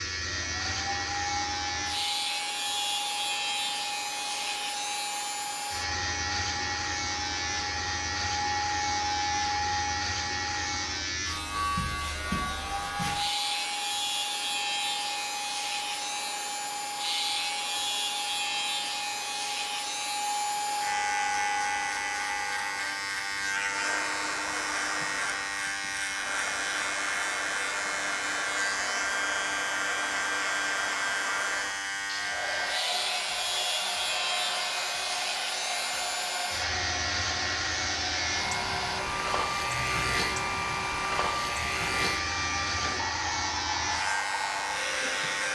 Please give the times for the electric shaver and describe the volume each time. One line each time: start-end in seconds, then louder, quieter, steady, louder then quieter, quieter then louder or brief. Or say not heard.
0.0-45.5 steady.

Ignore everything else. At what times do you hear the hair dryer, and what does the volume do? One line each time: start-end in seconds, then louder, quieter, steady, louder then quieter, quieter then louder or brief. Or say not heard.
0.0-45.5 steady.